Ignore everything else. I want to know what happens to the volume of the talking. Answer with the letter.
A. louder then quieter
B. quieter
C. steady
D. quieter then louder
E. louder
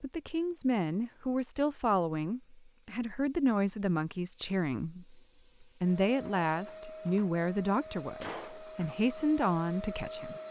C.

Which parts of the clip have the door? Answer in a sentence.
The door can be heard from 8.0 to 8.9 s.